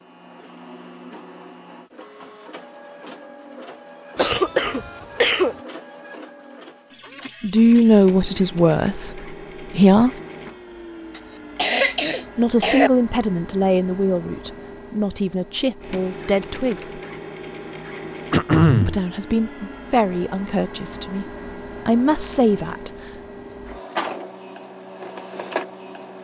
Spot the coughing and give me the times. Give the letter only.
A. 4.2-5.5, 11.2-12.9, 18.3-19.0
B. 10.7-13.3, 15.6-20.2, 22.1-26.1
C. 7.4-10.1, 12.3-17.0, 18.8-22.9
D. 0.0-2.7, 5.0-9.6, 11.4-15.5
A.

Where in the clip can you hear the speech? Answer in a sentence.
You can hear the speech from 7.4 to 10.1 s, from 12.3 to 17.0 s and from 18.8 to 22.9 s.